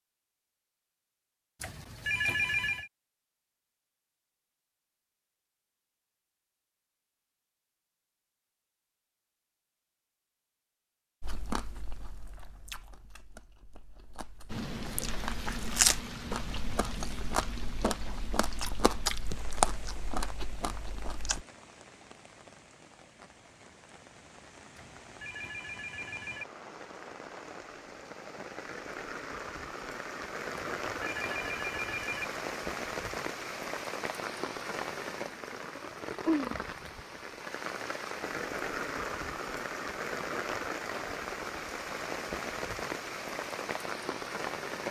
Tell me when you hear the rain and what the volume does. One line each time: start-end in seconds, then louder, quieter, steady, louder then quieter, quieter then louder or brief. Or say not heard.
14.4-44.8 quieter then louder.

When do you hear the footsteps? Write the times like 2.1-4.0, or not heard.
not heard.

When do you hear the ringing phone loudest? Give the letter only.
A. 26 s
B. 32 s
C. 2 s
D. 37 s
C.